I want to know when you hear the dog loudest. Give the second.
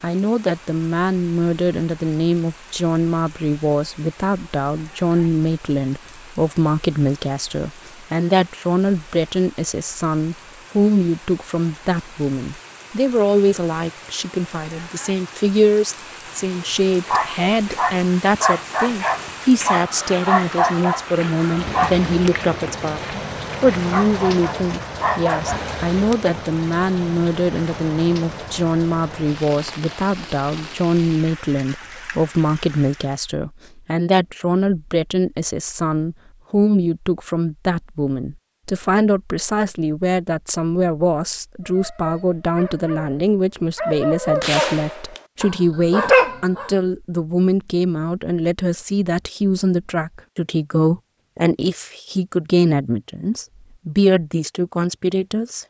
46 s.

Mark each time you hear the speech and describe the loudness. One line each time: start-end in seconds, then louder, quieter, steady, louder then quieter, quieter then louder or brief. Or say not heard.
0.0-55.6 steady.